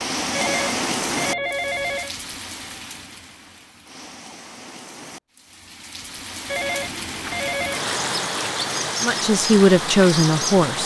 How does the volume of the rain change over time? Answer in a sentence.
The loudness of the rain goes down, then up.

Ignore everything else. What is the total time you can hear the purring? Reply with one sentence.
The purring can't be heard in this clip.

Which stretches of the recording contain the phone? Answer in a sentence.
You can hear the phone from 0.3 to 2.1 s and from 6.5 to 7.8 s.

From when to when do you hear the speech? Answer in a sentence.
The speech can be heard from 9.0 to 10.8 s.